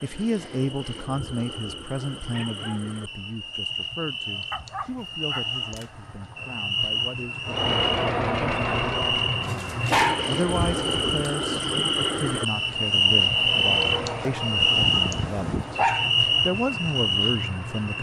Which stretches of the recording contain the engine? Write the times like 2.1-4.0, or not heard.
7.5-11.1, 12.5-17.9.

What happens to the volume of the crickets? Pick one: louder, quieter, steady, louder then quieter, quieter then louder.
louder.